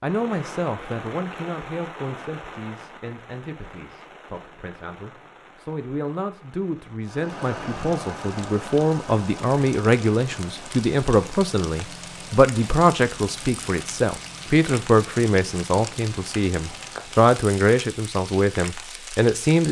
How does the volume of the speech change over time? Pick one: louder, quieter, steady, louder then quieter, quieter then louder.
louder.